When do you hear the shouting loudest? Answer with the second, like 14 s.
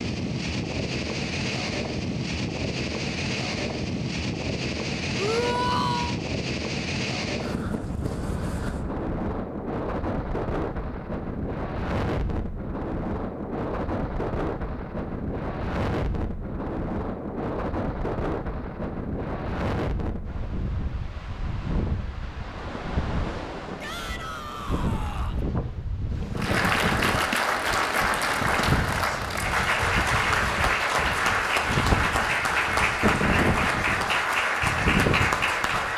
6 s.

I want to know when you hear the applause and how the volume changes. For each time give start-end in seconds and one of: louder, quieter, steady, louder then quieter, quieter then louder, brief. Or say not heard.
26.4-35.9 steady.